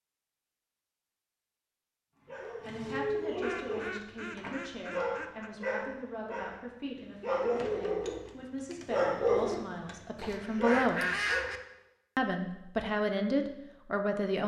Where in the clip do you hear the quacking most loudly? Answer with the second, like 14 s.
11 s.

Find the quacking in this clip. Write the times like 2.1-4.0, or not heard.
3.4-5.5, 10.2-11.6.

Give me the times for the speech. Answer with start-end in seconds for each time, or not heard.
2.6-11.1, 12.2-14.4.